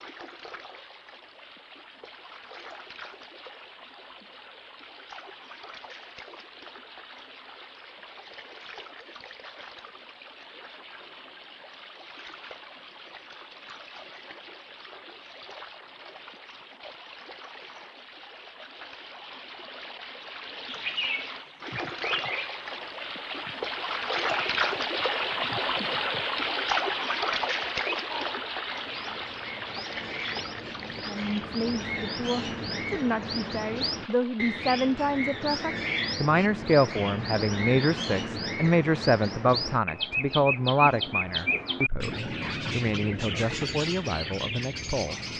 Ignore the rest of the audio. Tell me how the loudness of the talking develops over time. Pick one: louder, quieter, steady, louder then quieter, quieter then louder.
louder then quieter.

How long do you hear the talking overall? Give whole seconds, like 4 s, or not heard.
14 s.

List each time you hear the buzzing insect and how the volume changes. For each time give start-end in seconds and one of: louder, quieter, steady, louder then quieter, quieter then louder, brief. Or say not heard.
not heard.